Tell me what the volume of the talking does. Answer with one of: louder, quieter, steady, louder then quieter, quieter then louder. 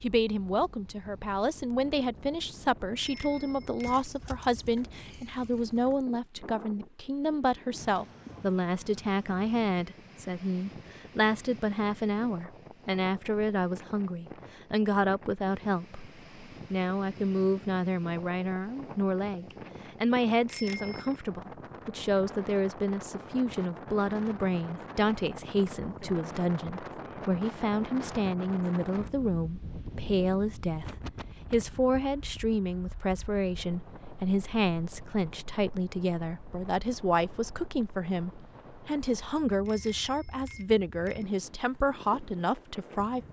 steady.